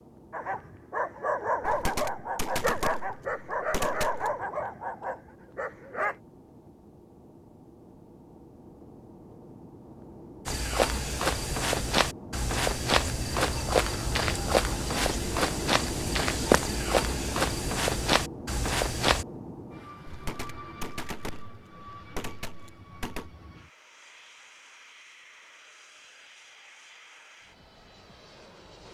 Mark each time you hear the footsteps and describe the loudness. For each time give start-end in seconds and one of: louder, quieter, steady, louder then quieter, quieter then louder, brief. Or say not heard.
10.4-19.2 steady.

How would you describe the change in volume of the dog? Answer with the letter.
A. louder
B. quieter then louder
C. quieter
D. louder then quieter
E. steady
C.